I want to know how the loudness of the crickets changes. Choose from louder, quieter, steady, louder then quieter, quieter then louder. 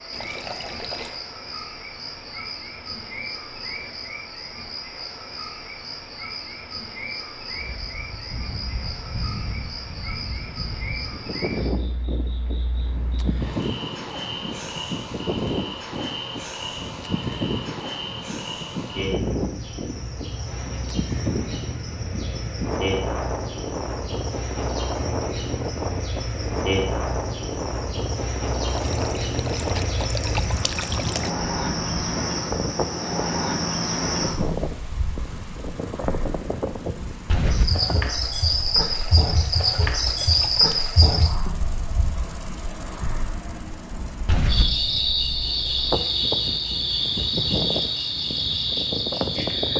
louder.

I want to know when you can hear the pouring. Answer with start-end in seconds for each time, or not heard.
0.1-1.1, 28.6-31.3, 38.9-40.8.